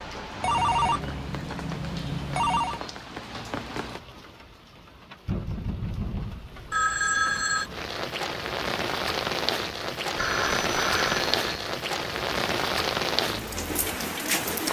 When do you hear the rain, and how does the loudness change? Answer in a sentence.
You can hear the rain from 0.0 to 14.6 s, getting louder.